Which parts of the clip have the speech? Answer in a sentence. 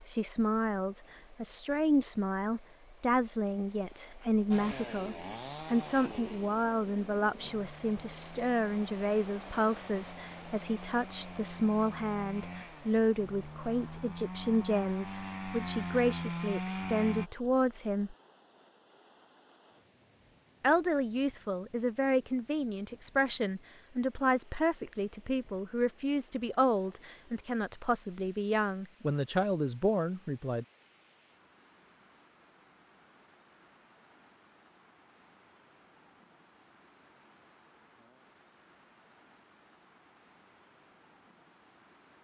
You can hear the speech from 0.0 to 18.1 s and from 20.6 to 30.6 s.